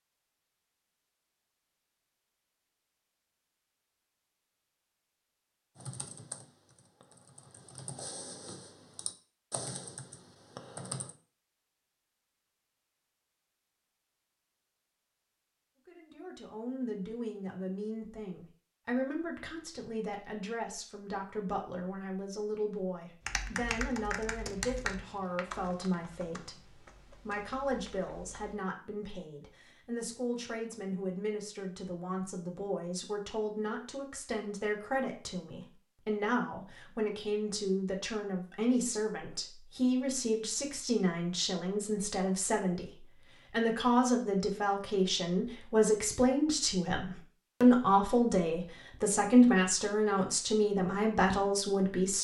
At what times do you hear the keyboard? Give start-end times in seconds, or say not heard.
5.8-11.2, 23.2-28.6.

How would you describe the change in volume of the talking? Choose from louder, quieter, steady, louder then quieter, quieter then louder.
louder.